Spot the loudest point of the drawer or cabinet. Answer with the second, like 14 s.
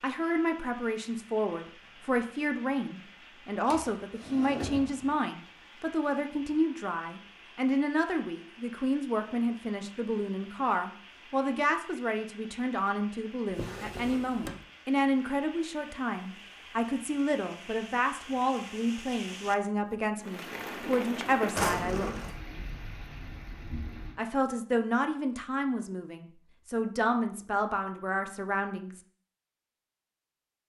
22 s.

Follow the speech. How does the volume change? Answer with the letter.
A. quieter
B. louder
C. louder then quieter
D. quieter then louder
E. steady
E.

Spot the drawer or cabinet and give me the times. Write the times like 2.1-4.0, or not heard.
3.7-5.1, 13.5-14.7, 21.6-22.4.